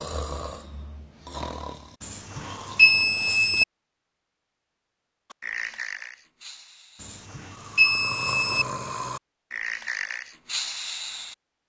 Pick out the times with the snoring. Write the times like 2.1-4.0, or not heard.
0.0-3.1, 5.3-11.3.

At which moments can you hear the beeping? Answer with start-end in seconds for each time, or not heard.
2.0-3.6, 7.0-8.7.